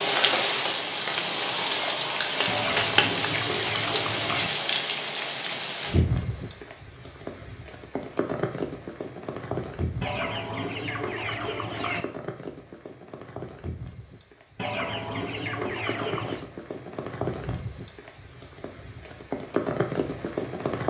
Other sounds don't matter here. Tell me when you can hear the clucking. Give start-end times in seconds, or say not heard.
2.5-4.5, 10.0-12.1, 14.6-16.4.